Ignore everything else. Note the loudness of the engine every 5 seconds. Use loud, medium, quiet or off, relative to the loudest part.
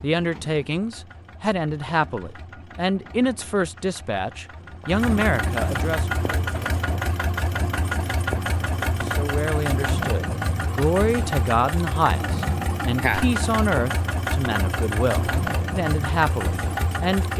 quiet, loud, loud, loud.